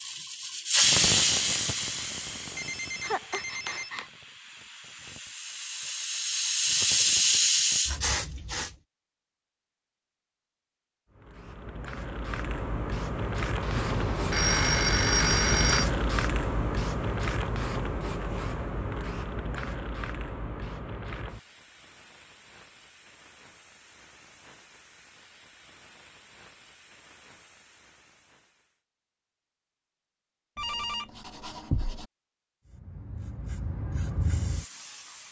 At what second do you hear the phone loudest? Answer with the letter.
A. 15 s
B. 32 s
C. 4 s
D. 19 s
A.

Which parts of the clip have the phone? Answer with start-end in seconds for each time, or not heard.
2.5-4.1, 13.6-15.8, 30.6-32.0.